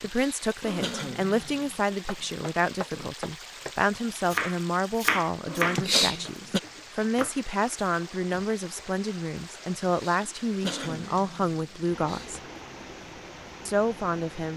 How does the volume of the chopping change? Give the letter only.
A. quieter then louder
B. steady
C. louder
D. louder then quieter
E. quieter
D.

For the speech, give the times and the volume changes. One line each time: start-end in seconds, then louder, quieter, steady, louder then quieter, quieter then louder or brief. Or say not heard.
0.0-12.4 steady
13.7-14.5 brief.